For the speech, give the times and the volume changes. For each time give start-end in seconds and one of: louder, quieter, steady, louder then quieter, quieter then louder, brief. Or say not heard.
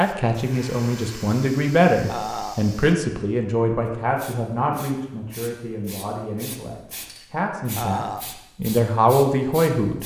0.0-10.0 quieter then louder.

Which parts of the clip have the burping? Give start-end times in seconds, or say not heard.
2.0-2.6, 7.8-8.3.